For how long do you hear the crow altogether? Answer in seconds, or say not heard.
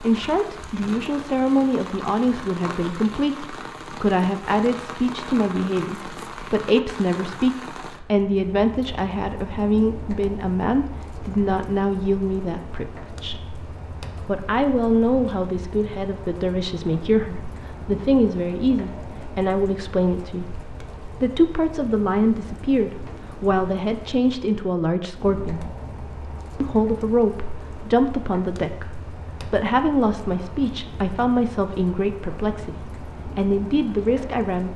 not heard.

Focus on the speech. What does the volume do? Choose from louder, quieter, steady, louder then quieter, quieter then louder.
steady.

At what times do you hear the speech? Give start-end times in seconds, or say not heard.
0.0-13.4, 14.2-25.6, 26.6-34.7.